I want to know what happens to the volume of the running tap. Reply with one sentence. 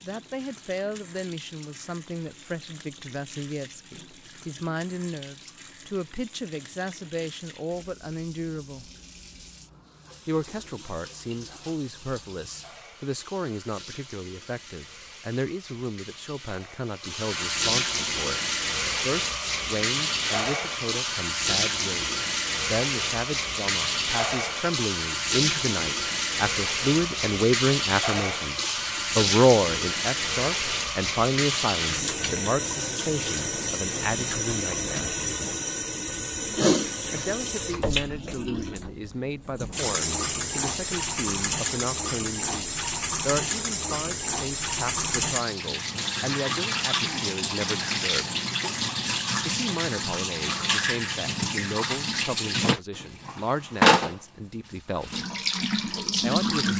The loudness of the running tap goes up.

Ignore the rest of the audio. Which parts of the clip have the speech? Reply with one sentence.
The speech can be heard from 0.0 to 8.8 s, from 10.2 to 35.1 s, from 37.1 to 48.4 s, from 49.5 to 55.2 s and from 56.2 to 56.7 s.